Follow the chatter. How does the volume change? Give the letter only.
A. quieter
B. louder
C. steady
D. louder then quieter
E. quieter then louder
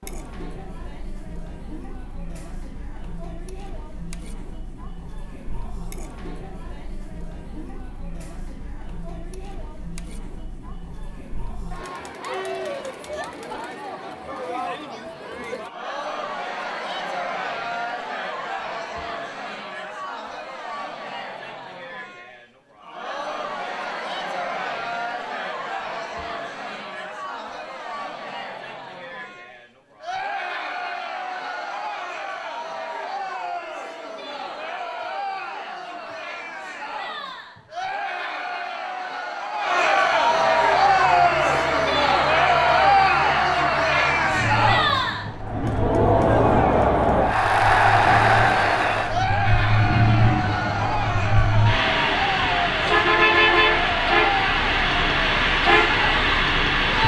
B.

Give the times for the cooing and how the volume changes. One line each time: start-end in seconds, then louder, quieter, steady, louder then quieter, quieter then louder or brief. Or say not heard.
not heard.